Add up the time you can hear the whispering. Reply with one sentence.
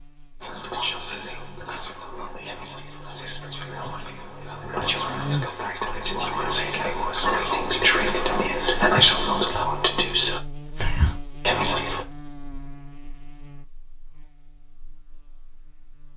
You can hear the whispering for 12 seconds altogether.